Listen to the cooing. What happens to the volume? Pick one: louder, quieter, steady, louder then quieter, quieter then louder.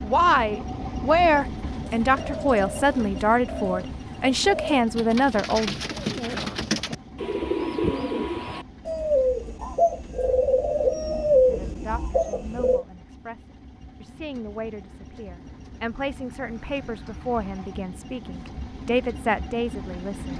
louder.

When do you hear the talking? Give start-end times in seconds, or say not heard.
0.0-5.7, 11.5-20.3.